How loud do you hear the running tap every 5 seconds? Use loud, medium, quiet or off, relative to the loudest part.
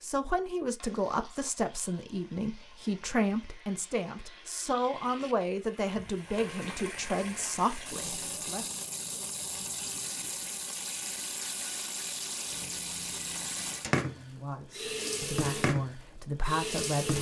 quiet, medium, loud, loud.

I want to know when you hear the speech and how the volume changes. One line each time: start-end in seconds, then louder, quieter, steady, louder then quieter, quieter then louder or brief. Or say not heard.
0.0-8.7 steady
14.2-17.1 brief.